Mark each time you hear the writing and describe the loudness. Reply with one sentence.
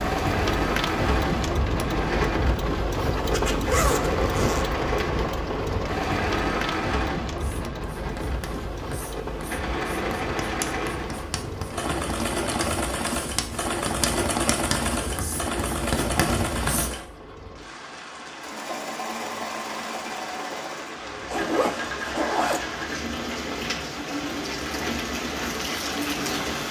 You can hear the writing from 7.3 to 16.9 s, getting louder.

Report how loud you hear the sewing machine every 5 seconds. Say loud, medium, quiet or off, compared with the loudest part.
loud, loud, loud, loud, medium, medium.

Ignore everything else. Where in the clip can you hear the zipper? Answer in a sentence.
You can hear the zipper from 3.1 to 4.7 s and from 21.3 to 22.6 s.